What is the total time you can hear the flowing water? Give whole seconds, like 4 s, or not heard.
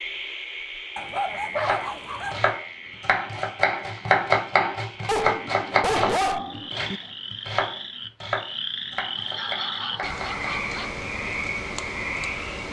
not heard.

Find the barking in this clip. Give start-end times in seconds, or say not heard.
0.9-2.5, 5.0-7.0, 9.2-10.9.